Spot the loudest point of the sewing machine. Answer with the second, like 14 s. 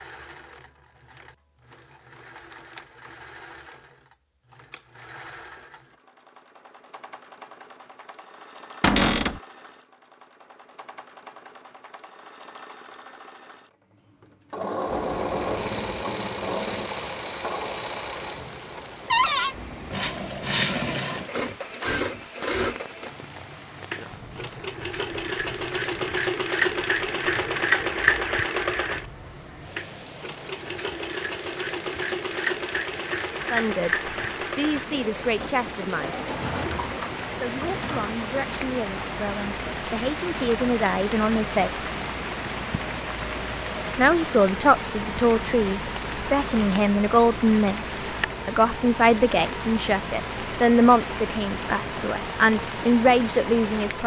28 s.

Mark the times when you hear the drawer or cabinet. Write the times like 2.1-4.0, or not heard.
8.8-9.4, 19.1-19.6, 36.2-38.1.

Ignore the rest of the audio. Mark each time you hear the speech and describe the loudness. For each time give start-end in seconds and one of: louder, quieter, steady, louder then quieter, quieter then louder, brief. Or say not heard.
33.5-36.1 brief
37.4-42.0 louder
44.0-54.0 steady.